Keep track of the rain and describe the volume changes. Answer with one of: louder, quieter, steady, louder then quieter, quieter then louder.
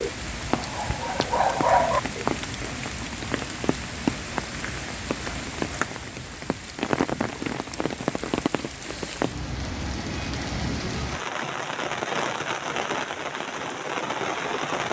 steady.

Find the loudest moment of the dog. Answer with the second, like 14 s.
2 s.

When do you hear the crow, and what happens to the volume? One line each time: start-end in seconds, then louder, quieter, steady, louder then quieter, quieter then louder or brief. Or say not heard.
not heard.